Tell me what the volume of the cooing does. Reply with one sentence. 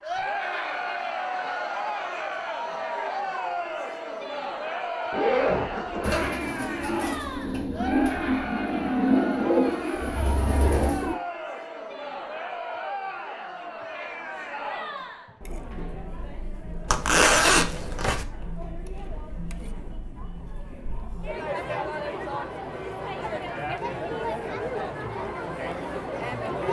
The volume of the cooing goes up, then down.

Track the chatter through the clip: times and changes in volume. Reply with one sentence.
You can hear the chatter from 0.0 to 26.6 s, getting quieter then louder.